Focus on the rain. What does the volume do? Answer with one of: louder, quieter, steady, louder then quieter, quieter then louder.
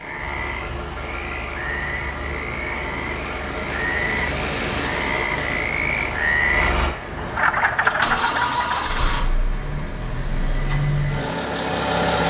louder then quieter.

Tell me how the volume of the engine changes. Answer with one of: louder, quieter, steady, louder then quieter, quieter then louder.
louder.